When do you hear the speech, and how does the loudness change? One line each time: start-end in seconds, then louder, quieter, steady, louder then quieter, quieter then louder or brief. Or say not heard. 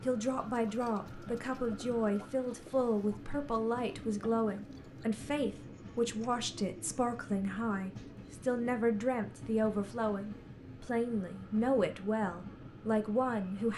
0.0-13.7 steady.